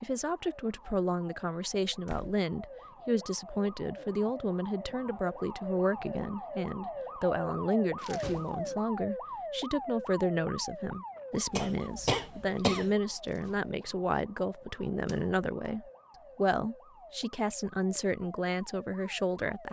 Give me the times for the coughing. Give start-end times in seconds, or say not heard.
11.6-12.9.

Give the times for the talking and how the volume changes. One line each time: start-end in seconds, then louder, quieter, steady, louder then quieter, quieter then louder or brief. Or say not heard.
0.0-19.6 steady.